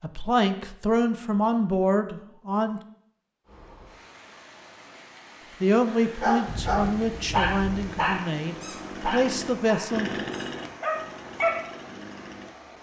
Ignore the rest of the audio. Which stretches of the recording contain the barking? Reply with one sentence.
The barking can be heard from 6.2 to 11.6 s.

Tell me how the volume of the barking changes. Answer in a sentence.
The loudness of the barking goes down, then up.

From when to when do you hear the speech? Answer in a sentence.
You can hear the speech from 0.0 to 2.8 s and from 5.6 to 10.2 s.